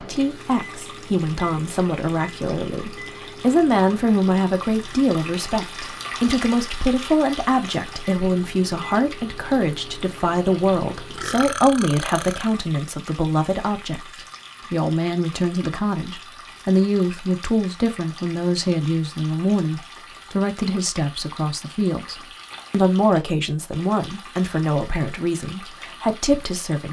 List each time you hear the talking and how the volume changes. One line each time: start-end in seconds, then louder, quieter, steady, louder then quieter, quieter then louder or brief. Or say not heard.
0.0-26.8 steady.